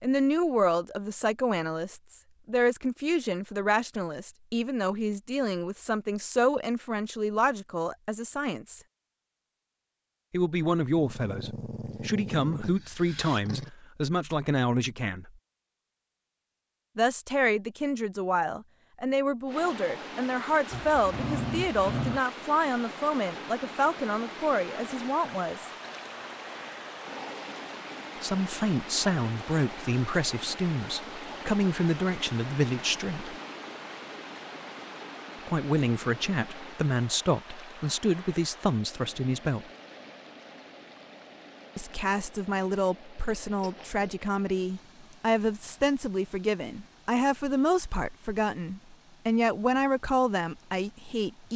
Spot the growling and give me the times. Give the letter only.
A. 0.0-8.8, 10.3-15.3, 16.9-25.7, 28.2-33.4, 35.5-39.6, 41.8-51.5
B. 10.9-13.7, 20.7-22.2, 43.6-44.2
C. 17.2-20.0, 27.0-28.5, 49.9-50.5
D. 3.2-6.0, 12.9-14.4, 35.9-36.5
B.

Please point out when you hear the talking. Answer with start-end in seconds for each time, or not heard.
0.0-8.8, 10.3-15.3, 16.9-25.7, 28.2-33.4, 35.5-39.6, 41.8-51.5.